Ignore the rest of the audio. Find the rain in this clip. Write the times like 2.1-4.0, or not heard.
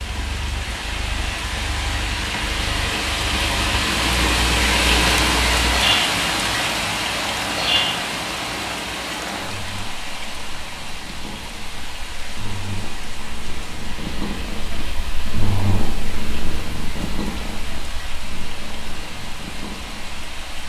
0.0-20.6.